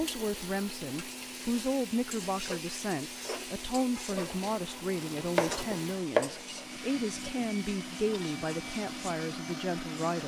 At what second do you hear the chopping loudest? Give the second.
6 s.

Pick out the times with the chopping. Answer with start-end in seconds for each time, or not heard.
4.3-6.5.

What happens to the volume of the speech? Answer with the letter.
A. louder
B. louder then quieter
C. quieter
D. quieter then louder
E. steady
E.